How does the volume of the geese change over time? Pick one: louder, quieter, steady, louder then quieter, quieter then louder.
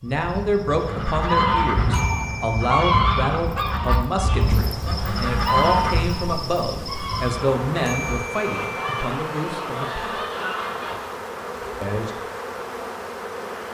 quieter.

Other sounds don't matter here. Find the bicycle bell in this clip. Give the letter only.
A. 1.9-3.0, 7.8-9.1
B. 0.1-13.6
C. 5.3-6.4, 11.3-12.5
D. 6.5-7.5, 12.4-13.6
A.